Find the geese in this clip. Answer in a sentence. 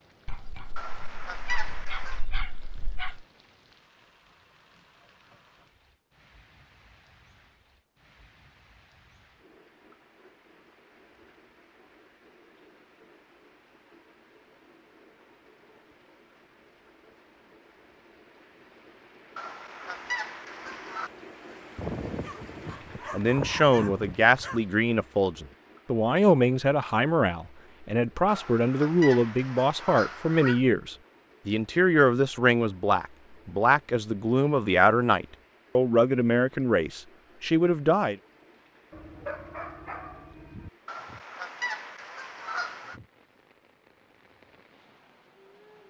The geese can be heard from 0.8 to 2.2 s, from 19.4 to 21.1 s, from 28.2 to 30.6 s and from 40.9 to 43.0 s.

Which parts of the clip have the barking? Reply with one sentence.
The barking can be heard from 0.2 to 3.2 s, from 21.8 to 24.6 s and from 38.9 to 40.7 s.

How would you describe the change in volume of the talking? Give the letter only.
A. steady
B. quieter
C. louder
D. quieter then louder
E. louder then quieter
A.